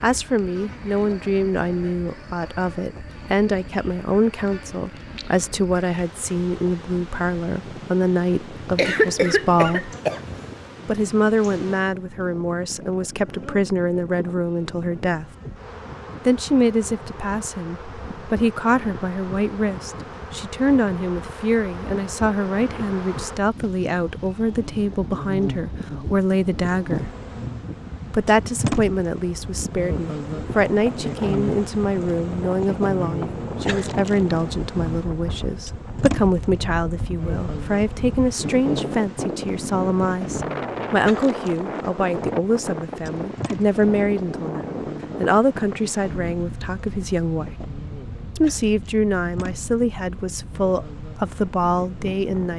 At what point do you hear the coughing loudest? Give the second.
9 s.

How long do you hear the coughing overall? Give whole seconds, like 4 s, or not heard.
2 s.